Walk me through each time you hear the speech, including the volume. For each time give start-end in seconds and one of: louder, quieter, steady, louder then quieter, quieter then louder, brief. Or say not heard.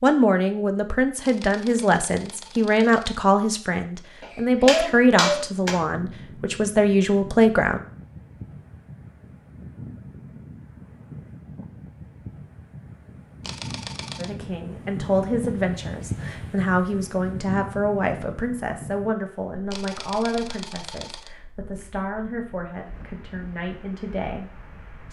0.0-7.8 steady
14.2-25.0 quieter.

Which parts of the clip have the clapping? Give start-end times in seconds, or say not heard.
4.2-5.8.